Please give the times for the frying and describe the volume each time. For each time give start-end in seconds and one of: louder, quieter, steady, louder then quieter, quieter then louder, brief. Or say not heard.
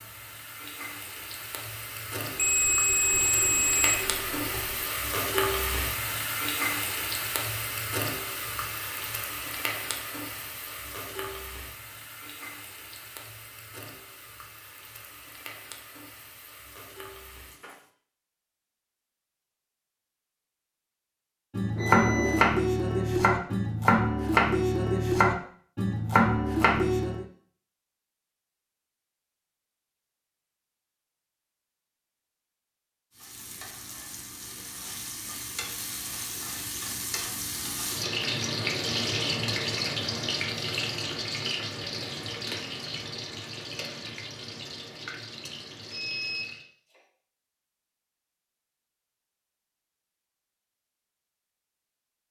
0.0-17.9 louder then quieter
33.1-46.6 louder then quieter.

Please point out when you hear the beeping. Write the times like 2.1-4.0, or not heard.
2.4-4.8, 21.8-22.5, 45.9-47.0.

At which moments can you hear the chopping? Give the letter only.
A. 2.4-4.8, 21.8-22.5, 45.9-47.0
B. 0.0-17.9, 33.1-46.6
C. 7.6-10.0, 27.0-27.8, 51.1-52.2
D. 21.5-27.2
D.